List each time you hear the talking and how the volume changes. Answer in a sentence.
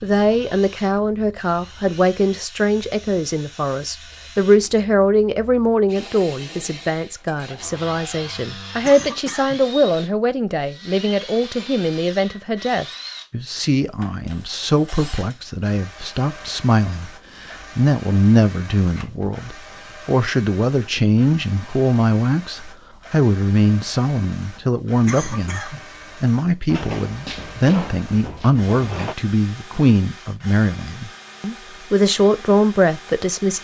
You can hear the talking from 0.0 to 33.6 s, at a steady volume.